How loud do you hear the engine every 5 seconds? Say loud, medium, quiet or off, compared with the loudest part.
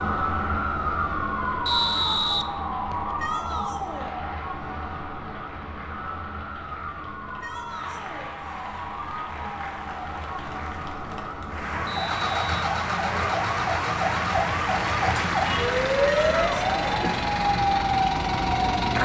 off, off, loud, loud.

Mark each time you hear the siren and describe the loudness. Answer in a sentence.
You can hear the siren from 0.0 to 19.0 s, getting quieter then louder.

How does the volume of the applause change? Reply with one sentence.
The loudness of the applause goes up.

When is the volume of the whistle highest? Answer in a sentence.
The loudest moment of the whistle is at 2 seconds.